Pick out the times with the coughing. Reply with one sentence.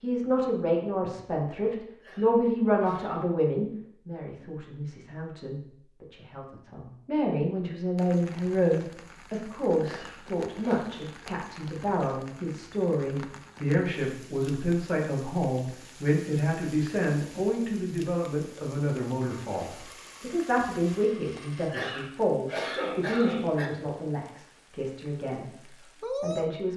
You can hear the coughing from 2.0 to 3.2 s, from 9.8 to 10.8 s and from 21.7 to 23.7 s.